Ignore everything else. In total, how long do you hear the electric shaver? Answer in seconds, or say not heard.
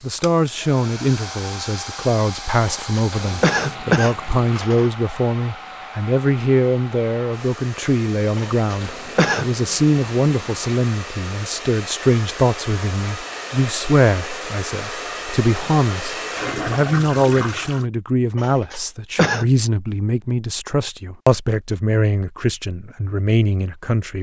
not heard.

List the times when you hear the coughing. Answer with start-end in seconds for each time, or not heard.
2.6-4.9, 8.3-9.5, 18.4-19.4.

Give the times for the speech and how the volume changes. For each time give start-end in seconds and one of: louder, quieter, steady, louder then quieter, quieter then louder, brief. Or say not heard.
0.0-24.1 steady.